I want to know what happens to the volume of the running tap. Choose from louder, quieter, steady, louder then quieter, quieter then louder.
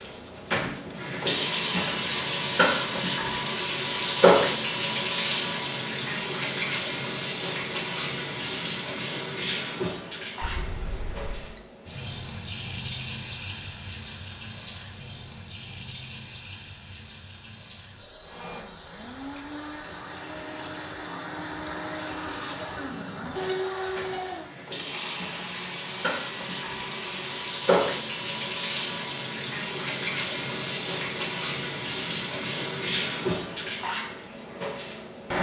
quieter then louder.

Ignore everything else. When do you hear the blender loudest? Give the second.
24 s.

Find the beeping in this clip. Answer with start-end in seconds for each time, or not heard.
10.4-11.6.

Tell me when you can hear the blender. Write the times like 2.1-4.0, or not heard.
18.2-27.4.